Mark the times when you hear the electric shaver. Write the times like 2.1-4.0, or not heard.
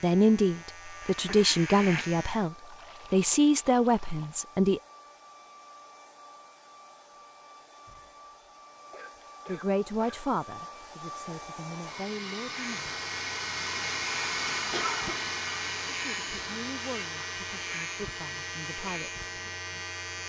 0.0-2.5, 12.4-20.2.